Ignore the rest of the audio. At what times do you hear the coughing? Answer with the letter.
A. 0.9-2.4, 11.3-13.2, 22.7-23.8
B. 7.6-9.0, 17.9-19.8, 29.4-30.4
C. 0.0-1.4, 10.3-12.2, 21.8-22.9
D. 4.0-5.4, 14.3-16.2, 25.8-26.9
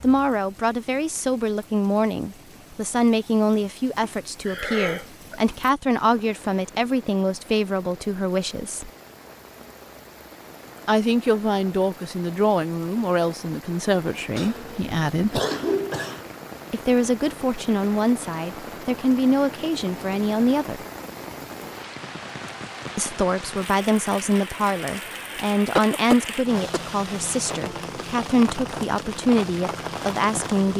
D.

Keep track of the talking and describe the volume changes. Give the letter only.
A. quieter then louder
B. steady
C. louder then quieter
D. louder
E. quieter
B.